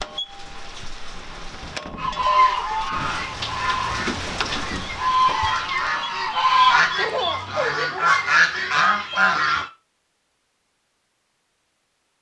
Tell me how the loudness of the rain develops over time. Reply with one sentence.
The volume of the rain goes up, then down.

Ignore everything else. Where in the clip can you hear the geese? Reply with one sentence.
You can hear the geese from 1.9 to 9.7 s.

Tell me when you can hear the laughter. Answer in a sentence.
You can hear the laughter from 7.0 to 8.1 s.